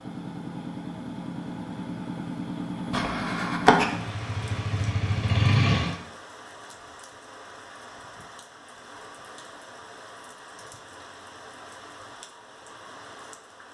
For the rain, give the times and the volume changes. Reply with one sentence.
The rain can be heard from 3.9 to 13.6 s, at a steady volume.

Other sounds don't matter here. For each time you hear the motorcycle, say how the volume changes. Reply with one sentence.
You can hear the motorcycle from 0.0 to 6.0 s, getting louder.